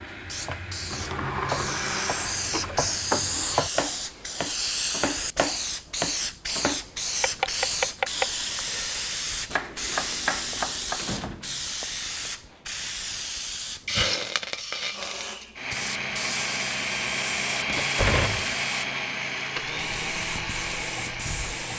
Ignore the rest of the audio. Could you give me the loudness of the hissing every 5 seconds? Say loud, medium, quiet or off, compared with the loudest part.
loud, loud, loud, medium, medium.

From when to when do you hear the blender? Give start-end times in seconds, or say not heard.
0.0-3.0, 14.9-21.7.